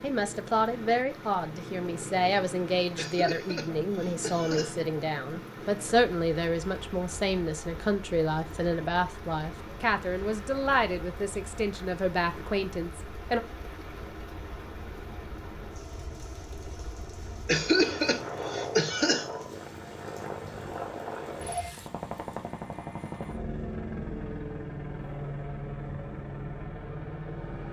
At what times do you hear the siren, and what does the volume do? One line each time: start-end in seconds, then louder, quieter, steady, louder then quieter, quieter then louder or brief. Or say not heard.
not heard.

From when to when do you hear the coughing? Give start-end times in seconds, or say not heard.
3.0-4.9, 17.4-19.5.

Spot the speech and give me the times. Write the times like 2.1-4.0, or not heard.
0.0-13.4.